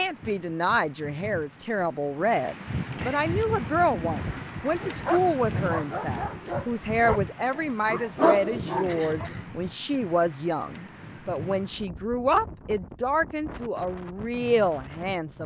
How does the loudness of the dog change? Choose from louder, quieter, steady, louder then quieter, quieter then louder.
louder.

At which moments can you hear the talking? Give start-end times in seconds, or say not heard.
0.0-15.4.